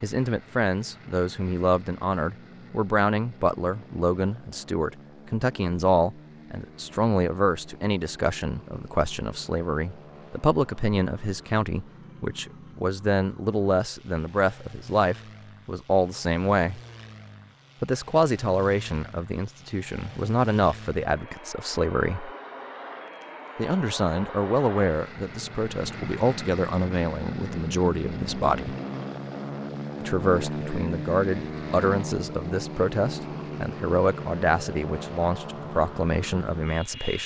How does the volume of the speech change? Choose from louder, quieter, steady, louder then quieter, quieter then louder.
steady.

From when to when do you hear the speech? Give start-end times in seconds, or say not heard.
0.0-16.8, 17.8-22.3, 23.6-28.8, 30.0-37.2.